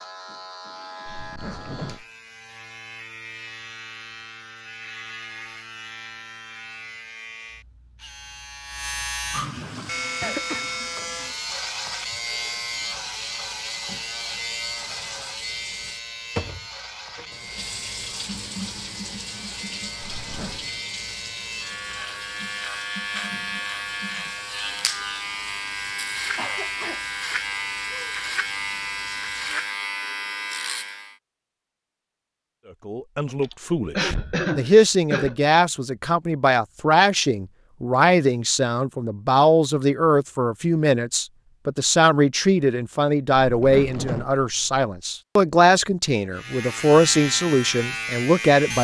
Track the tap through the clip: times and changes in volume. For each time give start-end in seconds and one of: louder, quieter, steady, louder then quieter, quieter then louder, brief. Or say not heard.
9.7-29.8 louder then quieter.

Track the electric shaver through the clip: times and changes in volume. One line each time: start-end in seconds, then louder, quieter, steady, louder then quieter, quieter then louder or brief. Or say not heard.
0.0-31.1 louder
46.3-48.7 brief.